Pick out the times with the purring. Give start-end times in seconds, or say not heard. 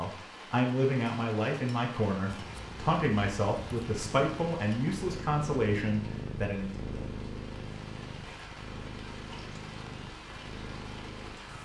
2.2-11.6.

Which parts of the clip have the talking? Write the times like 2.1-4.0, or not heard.
0.0-6.7.